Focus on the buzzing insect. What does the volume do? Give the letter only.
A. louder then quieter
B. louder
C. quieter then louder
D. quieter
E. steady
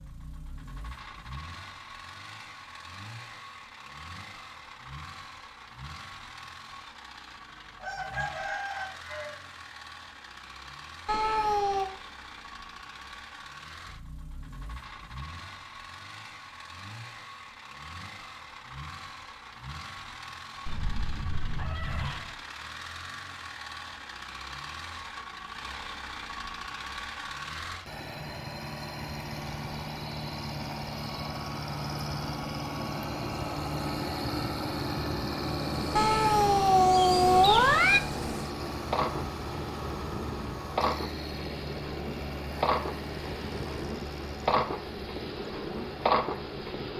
B.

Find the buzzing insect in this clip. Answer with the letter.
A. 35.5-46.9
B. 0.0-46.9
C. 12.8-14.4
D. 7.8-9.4
A.